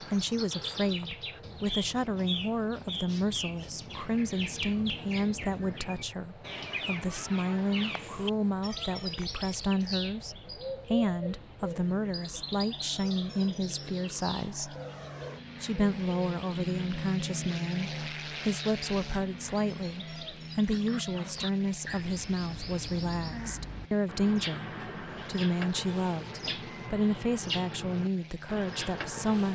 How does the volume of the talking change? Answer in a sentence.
The loudness of the talking stays about the same.